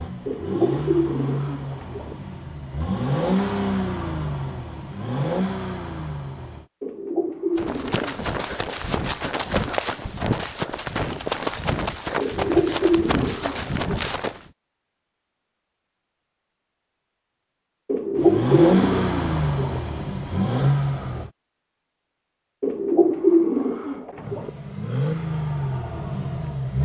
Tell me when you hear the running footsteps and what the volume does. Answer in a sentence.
The running footsteps can be heard from 7.5 to 14.5 s, at a steady volume.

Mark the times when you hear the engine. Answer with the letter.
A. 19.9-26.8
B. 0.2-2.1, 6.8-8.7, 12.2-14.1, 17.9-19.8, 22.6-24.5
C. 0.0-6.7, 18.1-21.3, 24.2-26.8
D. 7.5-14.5
C.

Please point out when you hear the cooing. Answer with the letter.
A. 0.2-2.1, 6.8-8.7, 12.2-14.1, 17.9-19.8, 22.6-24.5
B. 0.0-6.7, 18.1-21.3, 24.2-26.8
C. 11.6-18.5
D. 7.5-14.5
A.